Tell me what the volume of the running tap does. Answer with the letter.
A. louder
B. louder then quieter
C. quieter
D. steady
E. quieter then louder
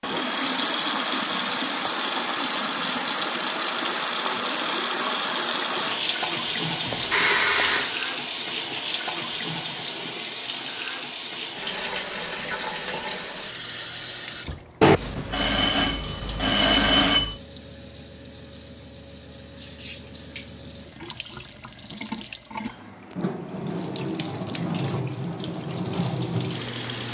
E.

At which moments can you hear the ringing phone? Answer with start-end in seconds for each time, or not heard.
6.8-8.0, 14.8-17.4.